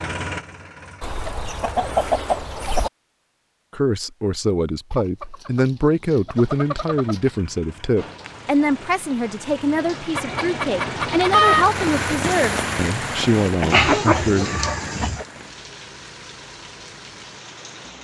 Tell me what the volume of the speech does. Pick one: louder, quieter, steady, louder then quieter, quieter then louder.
steady.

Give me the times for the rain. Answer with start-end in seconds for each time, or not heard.
8.0-17.9.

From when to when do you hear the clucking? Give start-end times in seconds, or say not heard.
1.0-2.9, 4.9-7.3, 10.2-11.8, 13.7-15.2.